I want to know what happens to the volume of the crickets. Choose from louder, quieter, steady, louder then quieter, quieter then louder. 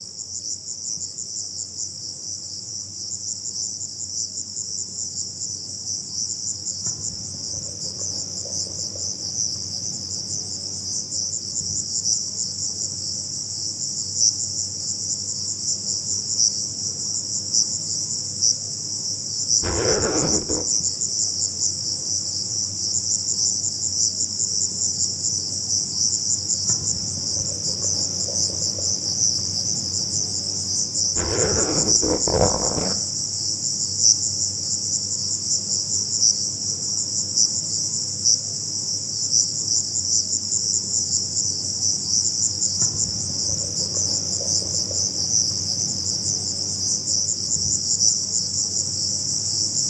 louder.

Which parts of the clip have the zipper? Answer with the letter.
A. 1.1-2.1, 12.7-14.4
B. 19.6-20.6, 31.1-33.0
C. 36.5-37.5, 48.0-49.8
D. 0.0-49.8
B.